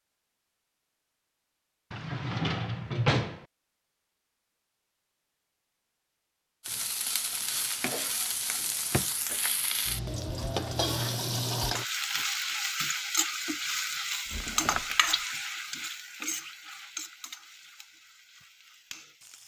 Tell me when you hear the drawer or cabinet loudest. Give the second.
3 s.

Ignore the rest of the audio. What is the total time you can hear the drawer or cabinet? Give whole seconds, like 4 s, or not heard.
3 s.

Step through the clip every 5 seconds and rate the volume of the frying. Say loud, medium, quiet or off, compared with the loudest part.
off, loud, loud, medium.